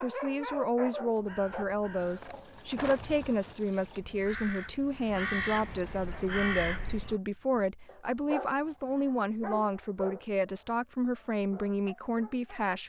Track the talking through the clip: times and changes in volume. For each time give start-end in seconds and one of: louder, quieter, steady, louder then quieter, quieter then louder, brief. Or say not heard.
0.0-12.8 steady.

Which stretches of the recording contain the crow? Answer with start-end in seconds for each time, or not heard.
1.1-7.2.